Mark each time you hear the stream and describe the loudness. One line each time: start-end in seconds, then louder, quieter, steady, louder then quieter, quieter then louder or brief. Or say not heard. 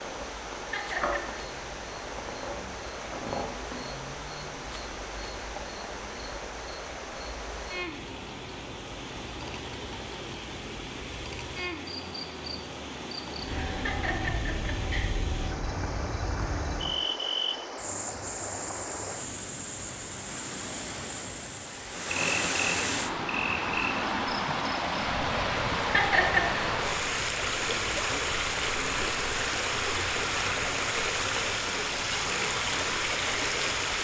0.0-33.9 louder.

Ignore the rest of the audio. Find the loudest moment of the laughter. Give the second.
26 s.